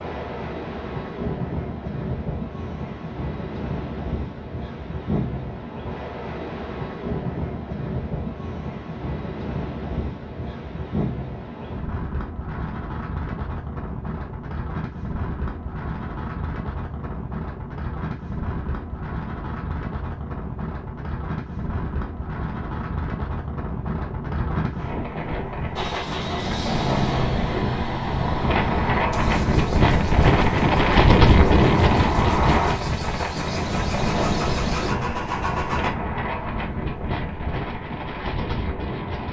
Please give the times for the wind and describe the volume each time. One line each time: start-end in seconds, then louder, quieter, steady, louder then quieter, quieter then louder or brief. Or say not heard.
0.0-39.2 louder.